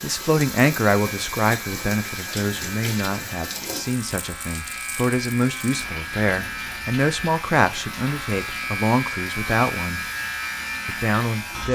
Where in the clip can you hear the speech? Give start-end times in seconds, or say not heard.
0.0-10.0, 10.8-11.6.